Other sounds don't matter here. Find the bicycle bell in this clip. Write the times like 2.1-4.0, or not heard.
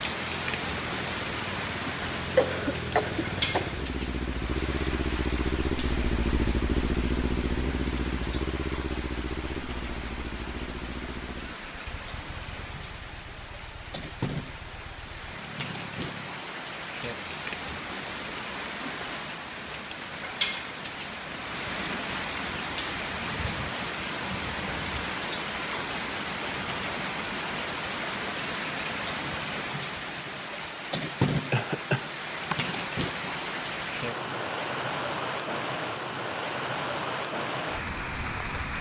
not heard.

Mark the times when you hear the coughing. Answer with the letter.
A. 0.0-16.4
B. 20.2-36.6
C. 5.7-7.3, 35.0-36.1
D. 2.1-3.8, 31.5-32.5
D.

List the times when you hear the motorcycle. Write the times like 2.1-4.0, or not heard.
0.0-16.4.